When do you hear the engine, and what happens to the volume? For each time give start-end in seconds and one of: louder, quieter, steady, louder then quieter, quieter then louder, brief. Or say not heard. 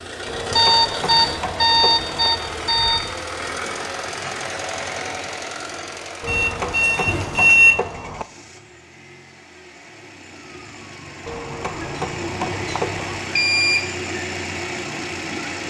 0.0-15.6 quieter then louder.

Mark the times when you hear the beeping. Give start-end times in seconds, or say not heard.
0.5-3.1, 6.2-7.8, 12.8-13.9.